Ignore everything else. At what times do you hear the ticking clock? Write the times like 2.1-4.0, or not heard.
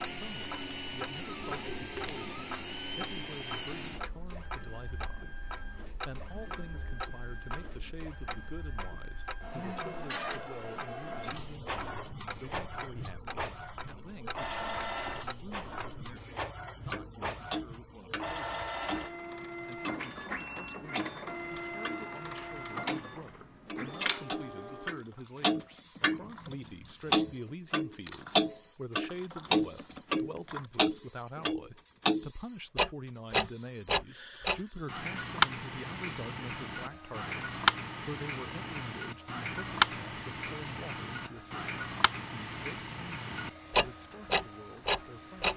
0.0-22.1, 22.9-45.5.